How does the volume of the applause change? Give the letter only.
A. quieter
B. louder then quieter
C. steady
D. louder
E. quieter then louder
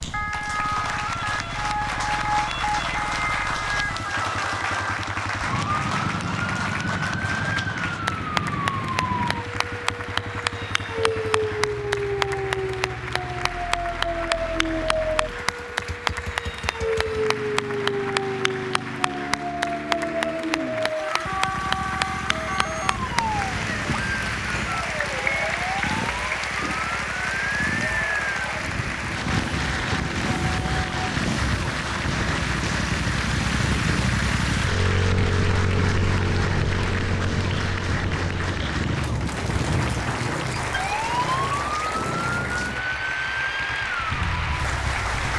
C.